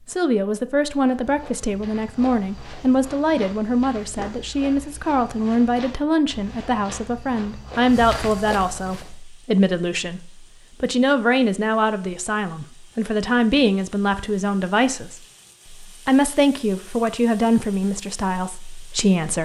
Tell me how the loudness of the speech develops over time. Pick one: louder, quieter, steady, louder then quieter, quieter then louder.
steady.